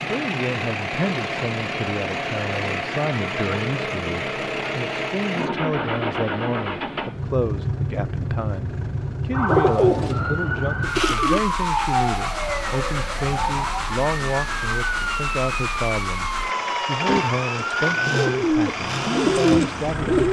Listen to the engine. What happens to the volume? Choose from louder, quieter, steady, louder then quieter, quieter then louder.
steady.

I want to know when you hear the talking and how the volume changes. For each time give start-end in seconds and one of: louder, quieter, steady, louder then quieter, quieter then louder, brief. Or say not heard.
0.0-20.2 steady.